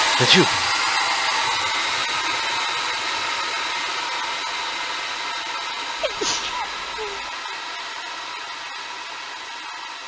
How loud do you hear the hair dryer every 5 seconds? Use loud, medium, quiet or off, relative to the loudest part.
loud, medium.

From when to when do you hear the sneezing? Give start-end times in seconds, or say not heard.
0.1-0.6, 6.0-7.3.